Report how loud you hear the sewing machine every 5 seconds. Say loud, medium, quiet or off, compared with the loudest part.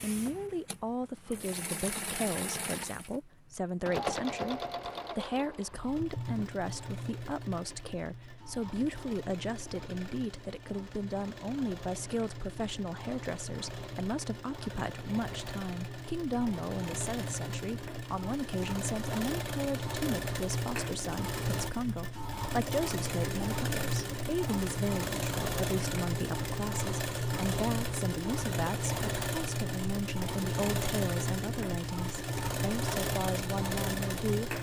medium, medium, medium, medium, loud, loud, loud.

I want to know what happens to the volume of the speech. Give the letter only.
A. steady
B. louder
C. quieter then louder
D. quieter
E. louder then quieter
A.